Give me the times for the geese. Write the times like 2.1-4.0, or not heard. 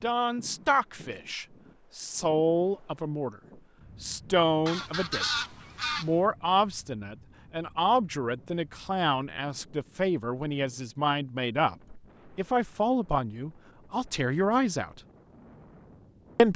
4.7-6.1.